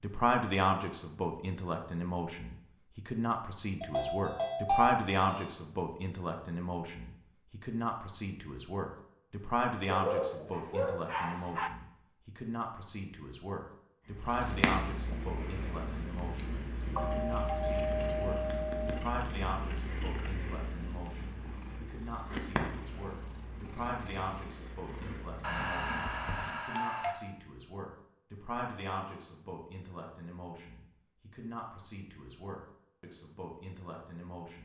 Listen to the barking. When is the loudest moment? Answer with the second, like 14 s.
10 s.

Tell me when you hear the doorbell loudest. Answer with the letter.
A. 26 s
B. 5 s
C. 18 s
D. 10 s
B.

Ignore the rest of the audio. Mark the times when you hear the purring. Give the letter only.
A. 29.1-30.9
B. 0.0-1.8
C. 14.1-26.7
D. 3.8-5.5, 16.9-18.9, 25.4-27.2
C.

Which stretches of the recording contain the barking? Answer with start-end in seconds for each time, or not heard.
9.9-11.7.